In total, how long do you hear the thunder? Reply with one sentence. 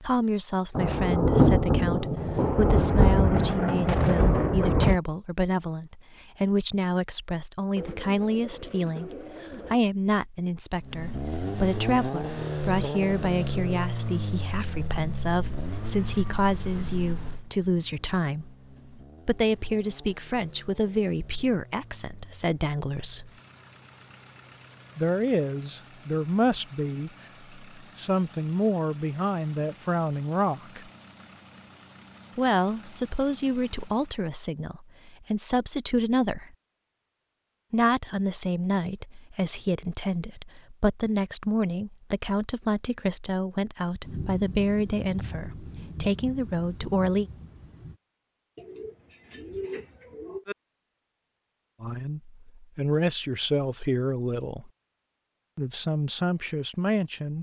You can hear the thunder for 8 seconds altogether.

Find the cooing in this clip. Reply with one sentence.
The cooing can be heard from 7.8 to 9.8 s and from 48.5 to 50.5 s.